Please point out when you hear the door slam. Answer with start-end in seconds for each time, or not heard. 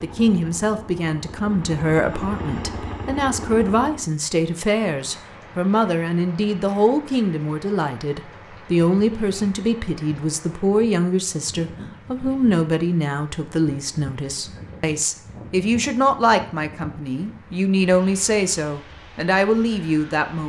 not heard.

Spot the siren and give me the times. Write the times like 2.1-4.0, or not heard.
not heard.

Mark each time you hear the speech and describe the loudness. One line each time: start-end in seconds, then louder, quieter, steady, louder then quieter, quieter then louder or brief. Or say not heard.
0.0-20.4 steady.